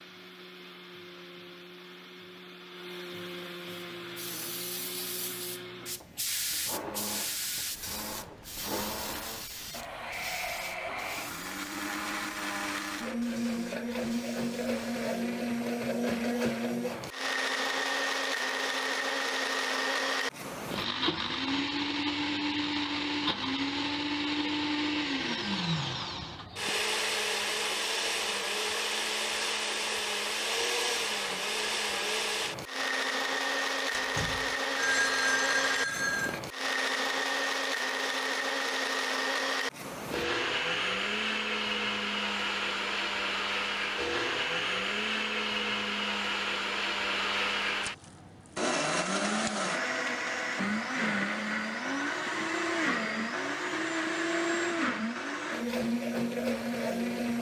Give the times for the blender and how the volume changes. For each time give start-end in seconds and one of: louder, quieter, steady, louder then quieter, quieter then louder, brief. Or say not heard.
0.0-57.3 louder.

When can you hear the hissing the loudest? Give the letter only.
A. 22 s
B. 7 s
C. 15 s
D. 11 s
B.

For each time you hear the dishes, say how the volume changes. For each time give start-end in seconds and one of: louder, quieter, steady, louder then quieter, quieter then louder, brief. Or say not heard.
not heard.